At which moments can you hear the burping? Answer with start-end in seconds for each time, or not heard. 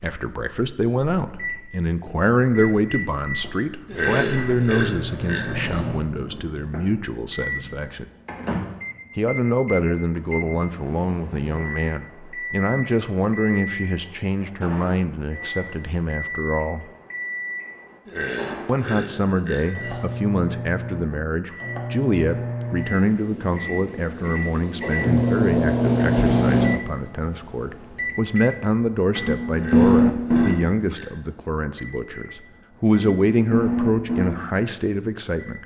3.9-5.8, 18.1-20.1, 29.5-31.4.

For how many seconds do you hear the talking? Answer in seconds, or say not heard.
33 s.